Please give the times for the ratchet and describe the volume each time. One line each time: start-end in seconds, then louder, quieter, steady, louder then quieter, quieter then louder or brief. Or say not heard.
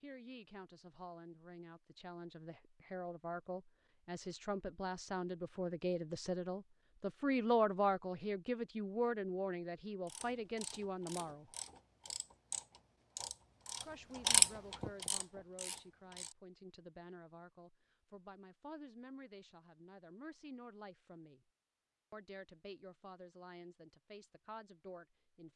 10.1-16.4 louder then quieter.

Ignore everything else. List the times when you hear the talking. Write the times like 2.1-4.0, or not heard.
0.0-11.6, 13.8-21.4, 22.1-25.5.